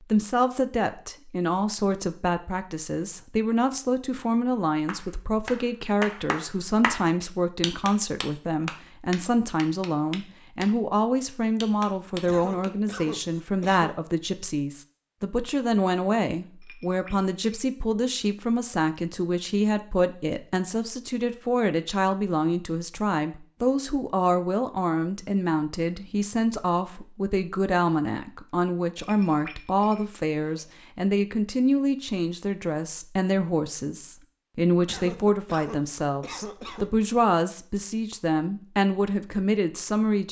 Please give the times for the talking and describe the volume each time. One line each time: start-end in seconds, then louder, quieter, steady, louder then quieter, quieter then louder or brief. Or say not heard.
0.1-40.2 steady.